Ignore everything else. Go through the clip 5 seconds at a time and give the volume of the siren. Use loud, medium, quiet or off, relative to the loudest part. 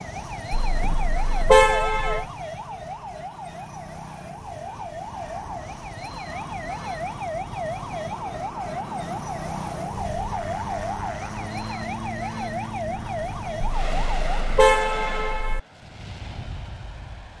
loud, loud, loud, off.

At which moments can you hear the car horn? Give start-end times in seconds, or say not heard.
0.5-2.2, 13.6-15.6.